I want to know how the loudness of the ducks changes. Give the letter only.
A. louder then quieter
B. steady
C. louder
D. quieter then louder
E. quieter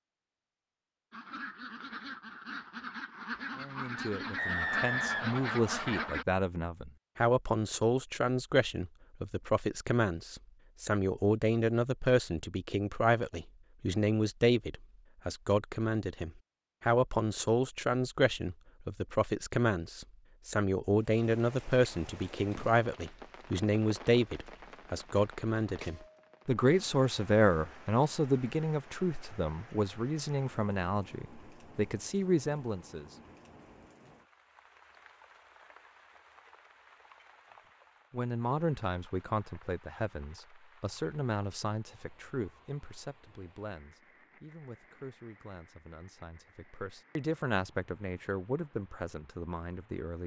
C.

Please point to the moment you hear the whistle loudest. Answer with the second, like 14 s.
5 s.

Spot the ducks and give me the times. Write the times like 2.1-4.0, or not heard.
1.1-6.2.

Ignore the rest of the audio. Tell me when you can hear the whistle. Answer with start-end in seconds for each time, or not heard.
4.3-6.1.